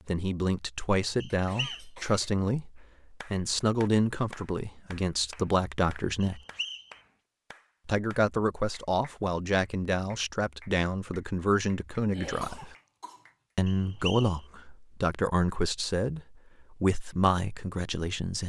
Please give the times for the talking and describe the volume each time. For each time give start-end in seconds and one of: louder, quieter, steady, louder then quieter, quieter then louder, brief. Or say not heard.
0.1-6.4 steady
7.8-12.8 steady
13.6-18.4 steady.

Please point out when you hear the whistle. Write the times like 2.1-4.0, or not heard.
1.2-1.9, 6.2-6.9, 13.7-14.3.